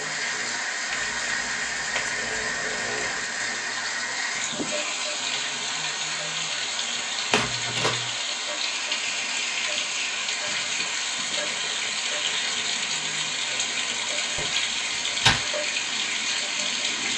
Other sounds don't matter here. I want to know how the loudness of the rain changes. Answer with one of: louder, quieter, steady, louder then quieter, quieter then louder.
steady.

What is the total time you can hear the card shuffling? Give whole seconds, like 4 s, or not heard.
4 s.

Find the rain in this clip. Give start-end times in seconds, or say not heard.
0.0-17.1.